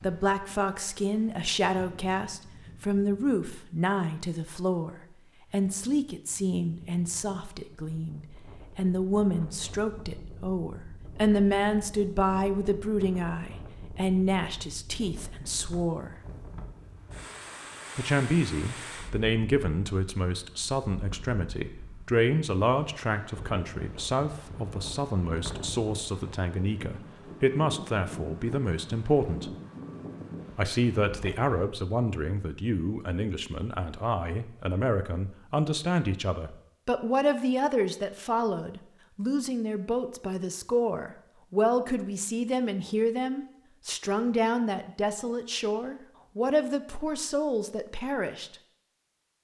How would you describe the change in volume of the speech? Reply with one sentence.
The loudness of the speech stays about the same.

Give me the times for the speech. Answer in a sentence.
You can hear the speech from 0.0 to 16.1 s, from 17.9 to 29.5 s and from 30.6 to 48.5 s.